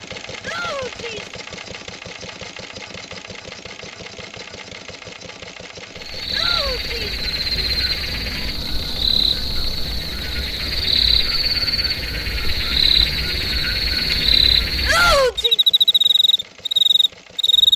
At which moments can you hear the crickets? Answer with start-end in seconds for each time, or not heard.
6.0-17.7.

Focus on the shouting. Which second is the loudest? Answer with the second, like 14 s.
15 s.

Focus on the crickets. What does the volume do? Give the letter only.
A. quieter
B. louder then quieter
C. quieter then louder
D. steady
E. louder
E.